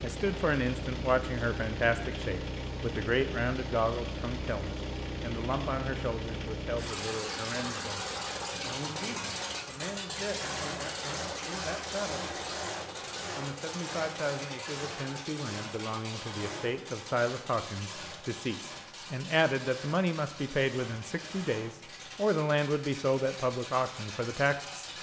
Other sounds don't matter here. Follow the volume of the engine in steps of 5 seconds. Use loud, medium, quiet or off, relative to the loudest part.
loud, loud, loud, medium, medium.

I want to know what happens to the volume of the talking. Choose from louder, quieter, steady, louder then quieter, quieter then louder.
quieter then louder.